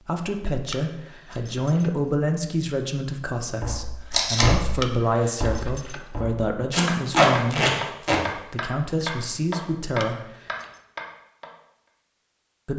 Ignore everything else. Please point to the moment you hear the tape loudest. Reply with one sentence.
The loudest moment of the tape is at 7 seconds.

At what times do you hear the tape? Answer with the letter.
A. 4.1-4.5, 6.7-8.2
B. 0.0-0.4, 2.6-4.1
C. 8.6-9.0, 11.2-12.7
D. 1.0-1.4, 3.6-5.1
A.